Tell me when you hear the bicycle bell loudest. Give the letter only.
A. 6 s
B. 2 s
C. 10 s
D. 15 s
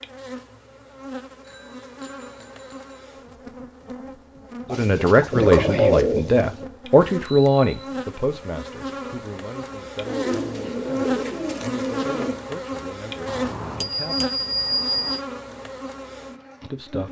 D.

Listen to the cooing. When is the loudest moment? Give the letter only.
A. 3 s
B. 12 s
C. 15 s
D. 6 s
D.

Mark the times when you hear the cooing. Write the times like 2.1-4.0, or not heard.
4.7-6.7, 10.1-12.4.